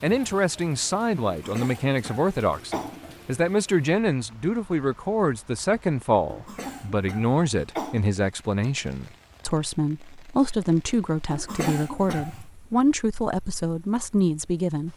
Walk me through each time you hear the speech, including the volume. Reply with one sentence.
The speech can be heard from 0.0 to 14.9 s, at a steady volume.